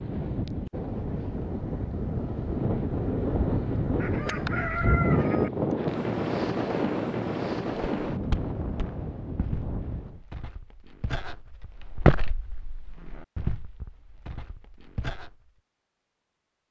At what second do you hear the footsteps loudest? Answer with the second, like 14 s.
12 s.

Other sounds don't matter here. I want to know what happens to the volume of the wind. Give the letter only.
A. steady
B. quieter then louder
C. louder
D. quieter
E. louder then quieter
E.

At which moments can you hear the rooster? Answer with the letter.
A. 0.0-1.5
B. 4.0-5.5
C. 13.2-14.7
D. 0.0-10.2
B.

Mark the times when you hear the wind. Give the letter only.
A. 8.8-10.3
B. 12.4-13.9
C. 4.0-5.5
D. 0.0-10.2
D.